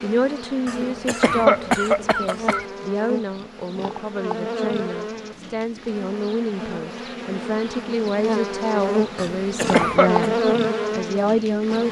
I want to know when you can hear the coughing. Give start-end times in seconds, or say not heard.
0.7-2.6, 9.2-10.3.